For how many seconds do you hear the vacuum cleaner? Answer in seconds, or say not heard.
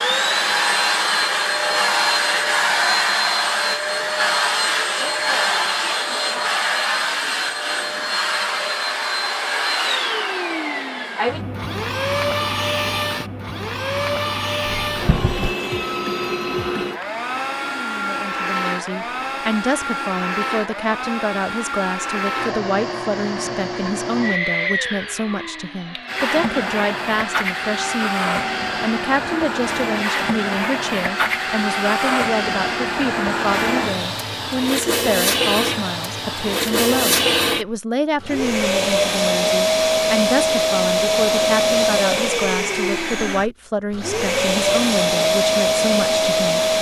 47 s.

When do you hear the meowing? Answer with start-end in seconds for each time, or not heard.
14.7-15.6.